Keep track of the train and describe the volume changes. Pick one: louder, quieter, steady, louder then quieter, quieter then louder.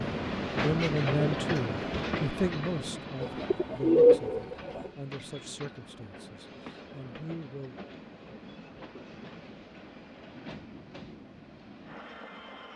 quieter.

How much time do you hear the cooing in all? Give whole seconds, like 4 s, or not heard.
2 s.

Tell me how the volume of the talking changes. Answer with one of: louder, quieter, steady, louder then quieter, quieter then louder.
quieter.